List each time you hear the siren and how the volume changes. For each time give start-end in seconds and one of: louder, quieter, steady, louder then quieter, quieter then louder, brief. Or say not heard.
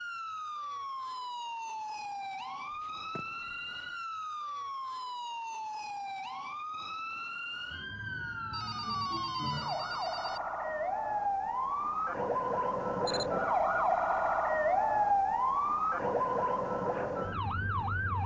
0.0-18.2 louder.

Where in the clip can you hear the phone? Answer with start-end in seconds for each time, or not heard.
2.8-4.0, 8.5-10.4, 13.1-14.4.